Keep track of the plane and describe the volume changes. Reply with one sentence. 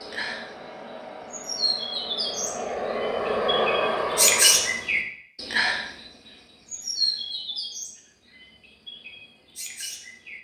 The loudness of the plane goes up.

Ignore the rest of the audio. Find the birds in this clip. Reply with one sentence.
You can hear the birds from 0.0 to 10.3 s.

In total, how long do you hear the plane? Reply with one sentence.
You can hear the plane for 5 seconds altogether.